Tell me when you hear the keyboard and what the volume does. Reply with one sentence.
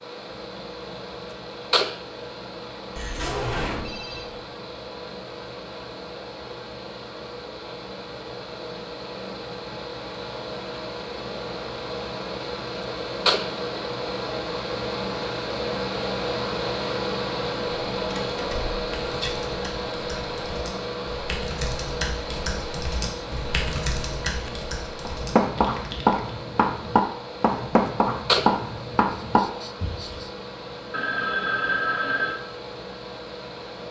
You can hear the keyboard from 18.9 to 26.4 s, getting louder then quieter.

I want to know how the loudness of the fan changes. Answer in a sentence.
The loudness of the fan goes up, then down.